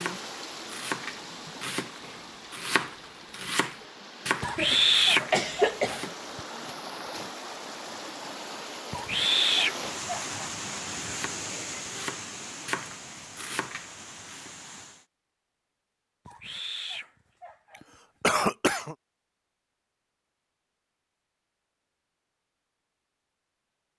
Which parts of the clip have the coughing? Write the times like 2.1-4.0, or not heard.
4.4-6.1, 18.2-18.9.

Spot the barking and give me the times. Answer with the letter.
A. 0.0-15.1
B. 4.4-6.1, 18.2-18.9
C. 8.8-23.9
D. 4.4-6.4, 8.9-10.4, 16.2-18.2
D.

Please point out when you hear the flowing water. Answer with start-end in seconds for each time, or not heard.
0.0-15.1.